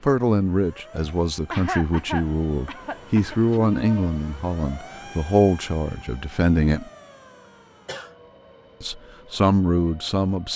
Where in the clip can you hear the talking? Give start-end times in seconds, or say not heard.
0.0-6.9, 8.8-10.5.